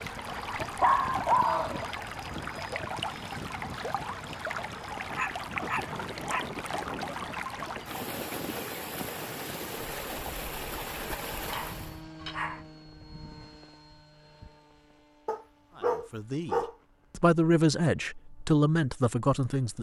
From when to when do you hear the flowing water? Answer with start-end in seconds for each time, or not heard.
0.0-12.0.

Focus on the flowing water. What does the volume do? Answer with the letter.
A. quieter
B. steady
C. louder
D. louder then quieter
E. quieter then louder
B.